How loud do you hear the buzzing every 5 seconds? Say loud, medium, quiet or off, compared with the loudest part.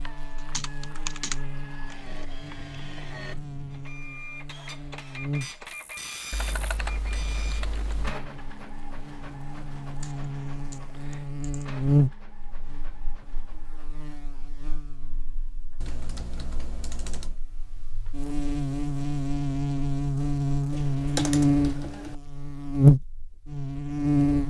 quiet, quiet, medium, medium, loud.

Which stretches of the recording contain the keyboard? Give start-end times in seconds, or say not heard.
0.5-1.9, 6.3-8.2, 10.0-11.7, 15.8-17.4, 20.7-22.1.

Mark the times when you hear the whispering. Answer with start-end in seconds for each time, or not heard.
not heard.